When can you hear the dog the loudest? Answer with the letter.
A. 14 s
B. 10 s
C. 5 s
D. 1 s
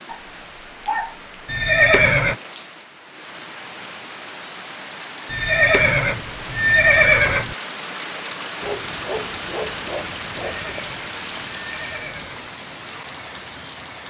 D.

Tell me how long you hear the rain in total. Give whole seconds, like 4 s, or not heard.
14 s.